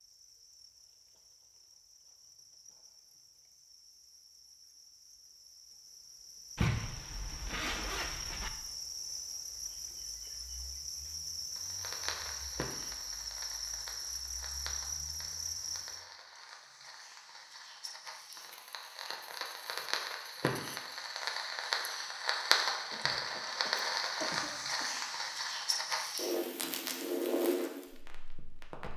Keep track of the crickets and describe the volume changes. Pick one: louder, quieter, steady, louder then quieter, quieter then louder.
louder.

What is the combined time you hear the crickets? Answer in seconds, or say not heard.
16 s.